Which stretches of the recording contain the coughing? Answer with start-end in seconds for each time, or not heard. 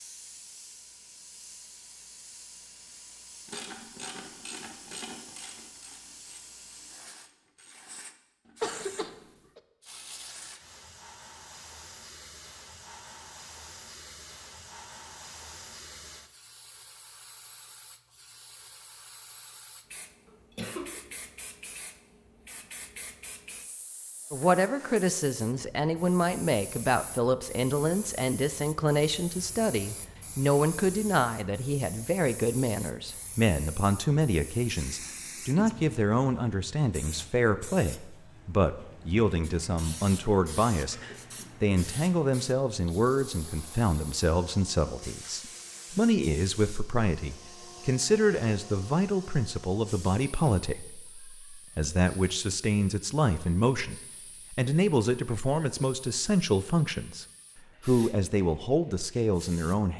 8.6-9.6, 20.2-21.1, 40.9-41.8.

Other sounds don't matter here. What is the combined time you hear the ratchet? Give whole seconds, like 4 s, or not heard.
6 s.